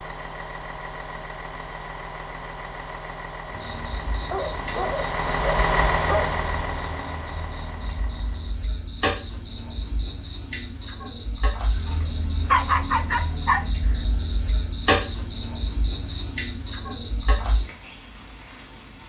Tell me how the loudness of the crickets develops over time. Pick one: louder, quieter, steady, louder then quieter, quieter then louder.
louder.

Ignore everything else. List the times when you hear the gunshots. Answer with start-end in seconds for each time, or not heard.
not heard.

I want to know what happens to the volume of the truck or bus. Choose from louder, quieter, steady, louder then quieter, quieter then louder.
louder then quieter.